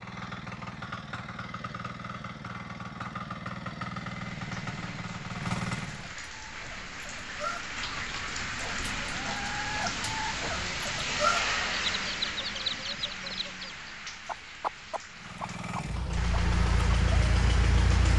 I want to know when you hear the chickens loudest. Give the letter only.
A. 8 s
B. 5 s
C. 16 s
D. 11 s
D.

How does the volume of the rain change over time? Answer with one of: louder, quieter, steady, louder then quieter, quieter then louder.
louder then quieter.